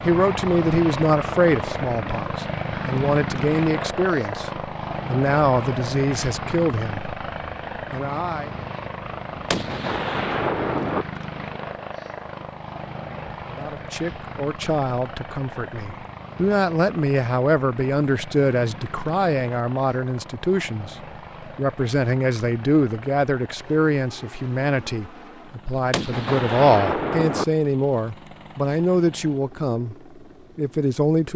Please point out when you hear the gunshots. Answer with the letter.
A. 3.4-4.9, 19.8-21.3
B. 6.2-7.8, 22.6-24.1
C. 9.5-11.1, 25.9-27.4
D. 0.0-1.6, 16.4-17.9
C.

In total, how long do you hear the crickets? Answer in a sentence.
You can't hear the crickets here.